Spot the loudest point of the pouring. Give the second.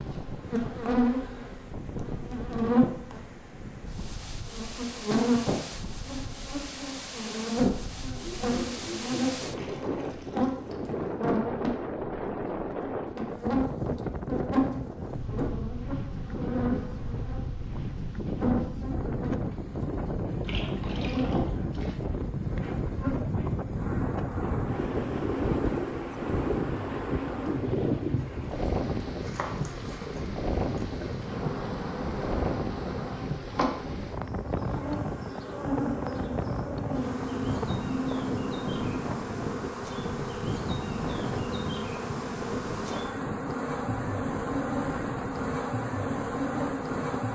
38 s.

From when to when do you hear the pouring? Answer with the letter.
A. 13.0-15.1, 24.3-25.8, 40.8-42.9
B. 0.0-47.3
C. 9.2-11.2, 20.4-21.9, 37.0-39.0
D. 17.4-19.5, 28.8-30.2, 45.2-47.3
C.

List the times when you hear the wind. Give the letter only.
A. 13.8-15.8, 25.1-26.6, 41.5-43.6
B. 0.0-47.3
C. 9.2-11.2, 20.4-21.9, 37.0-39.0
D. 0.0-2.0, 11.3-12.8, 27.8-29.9
B.